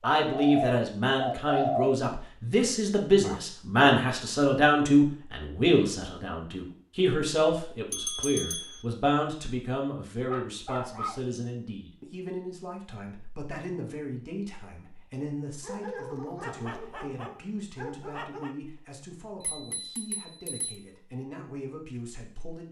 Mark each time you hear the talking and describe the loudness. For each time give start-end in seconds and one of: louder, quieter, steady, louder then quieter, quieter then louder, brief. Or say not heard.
0.0-22.6 quieter.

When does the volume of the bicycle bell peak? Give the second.
8 s.